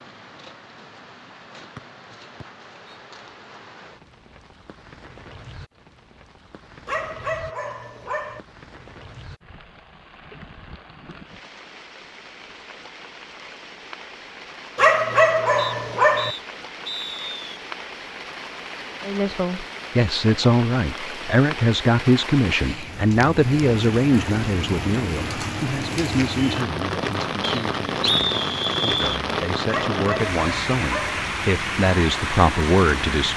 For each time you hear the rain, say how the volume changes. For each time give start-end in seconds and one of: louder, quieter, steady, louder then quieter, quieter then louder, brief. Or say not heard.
0.0-33.3 louder.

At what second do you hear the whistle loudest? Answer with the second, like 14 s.
28 s.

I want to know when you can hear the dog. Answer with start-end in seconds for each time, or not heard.
6.8-8.4, 14.8-16.4, 29.6-31.2.